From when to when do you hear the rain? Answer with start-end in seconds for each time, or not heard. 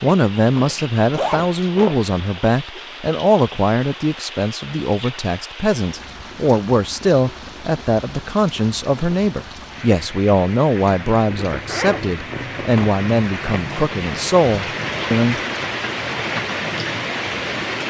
0.0-17.8.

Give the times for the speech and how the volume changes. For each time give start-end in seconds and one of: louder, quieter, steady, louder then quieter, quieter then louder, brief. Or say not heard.
0.0-15.3 steady.